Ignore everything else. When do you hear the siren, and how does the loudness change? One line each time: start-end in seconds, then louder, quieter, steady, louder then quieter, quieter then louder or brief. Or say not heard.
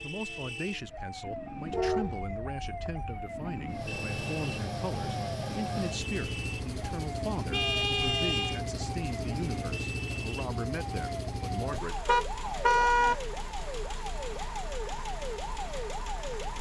0.0-16.5 steady.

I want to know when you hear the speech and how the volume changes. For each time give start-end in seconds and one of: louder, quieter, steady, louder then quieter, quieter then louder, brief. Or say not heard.
0.0-12.0 steady.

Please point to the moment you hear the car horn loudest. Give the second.
13 s.